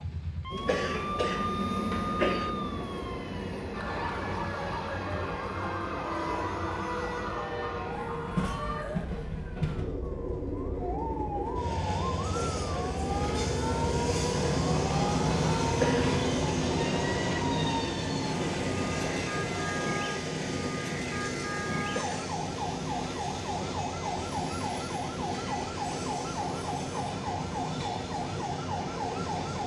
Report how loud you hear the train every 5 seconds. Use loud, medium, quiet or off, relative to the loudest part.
medium, medium, loud, loud, medium, medium.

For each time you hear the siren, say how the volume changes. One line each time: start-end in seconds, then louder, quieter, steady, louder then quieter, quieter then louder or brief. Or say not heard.
0.0-29.6 steady.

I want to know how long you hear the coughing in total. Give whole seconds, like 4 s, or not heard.
3 s.